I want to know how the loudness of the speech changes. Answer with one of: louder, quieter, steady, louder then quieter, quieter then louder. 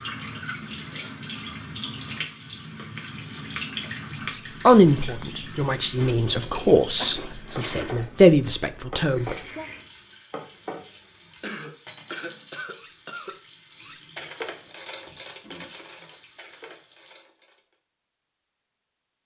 louder then quieter.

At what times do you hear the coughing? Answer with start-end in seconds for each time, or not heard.
7.0-7.5, 11.4-13.4.